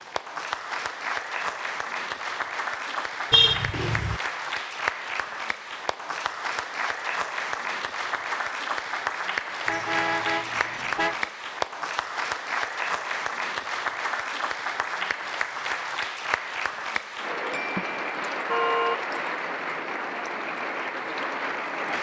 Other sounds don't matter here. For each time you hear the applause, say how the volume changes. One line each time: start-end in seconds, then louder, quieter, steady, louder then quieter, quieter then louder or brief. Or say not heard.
0.0-21.9 steady.